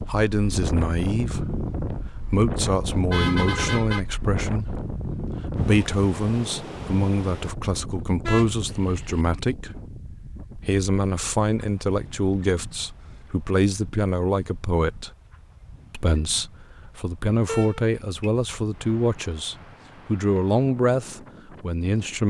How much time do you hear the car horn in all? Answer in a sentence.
The car horn can be heard for 3 seconds in total.